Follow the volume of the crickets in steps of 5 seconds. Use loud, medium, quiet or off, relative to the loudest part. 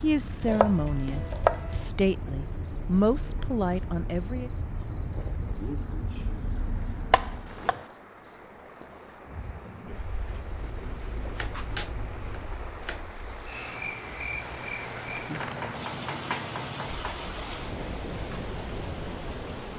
loud, loud, medium, medium.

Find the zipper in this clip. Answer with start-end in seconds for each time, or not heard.
not heard.